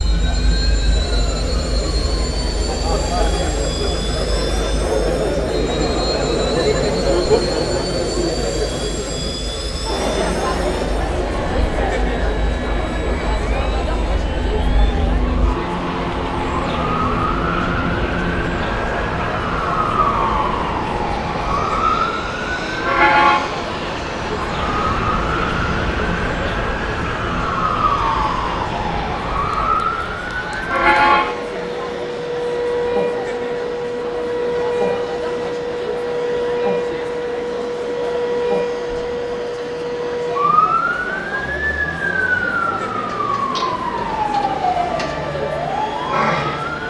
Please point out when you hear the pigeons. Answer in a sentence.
You can't hear the pigeons here.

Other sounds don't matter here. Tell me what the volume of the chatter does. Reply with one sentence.
The volume of the chatter goes down.